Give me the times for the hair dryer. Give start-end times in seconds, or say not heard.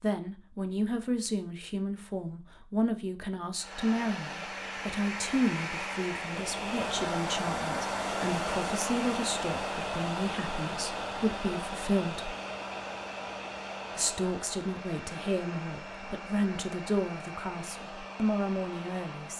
3.5-19.3.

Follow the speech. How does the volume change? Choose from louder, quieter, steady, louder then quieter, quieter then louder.
steady.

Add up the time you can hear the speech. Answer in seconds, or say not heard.
18 s.